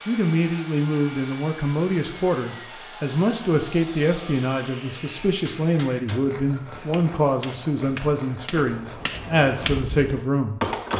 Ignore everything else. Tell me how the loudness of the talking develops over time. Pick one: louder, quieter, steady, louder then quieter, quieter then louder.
steady.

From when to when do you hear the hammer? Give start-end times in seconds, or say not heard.
5.2-10.9.